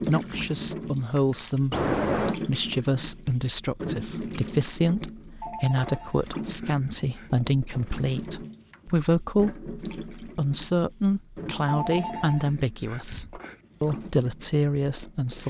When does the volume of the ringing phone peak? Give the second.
2 s.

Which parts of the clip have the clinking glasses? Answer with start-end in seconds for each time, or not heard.
not heard.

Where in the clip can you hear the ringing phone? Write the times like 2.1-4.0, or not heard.
1.7-2.4, 5.4-7.3, 11.7-13.6.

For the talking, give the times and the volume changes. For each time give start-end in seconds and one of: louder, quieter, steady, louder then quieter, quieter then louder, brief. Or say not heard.
0.1-15.4 steady.